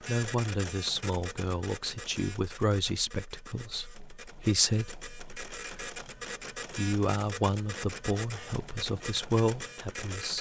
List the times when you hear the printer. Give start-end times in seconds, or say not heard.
0.0-10.3.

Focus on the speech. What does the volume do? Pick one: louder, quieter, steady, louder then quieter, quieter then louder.
steady.